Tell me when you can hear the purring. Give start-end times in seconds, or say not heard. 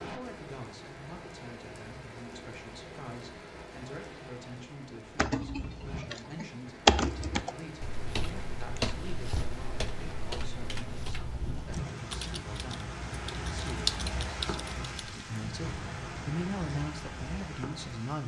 not heard.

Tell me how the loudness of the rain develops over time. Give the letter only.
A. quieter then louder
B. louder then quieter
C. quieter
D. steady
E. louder
E.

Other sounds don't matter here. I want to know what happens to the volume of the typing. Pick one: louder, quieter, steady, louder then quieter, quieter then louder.
quieter then louder.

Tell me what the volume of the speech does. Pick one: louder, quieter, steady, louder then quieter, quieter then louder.
louder.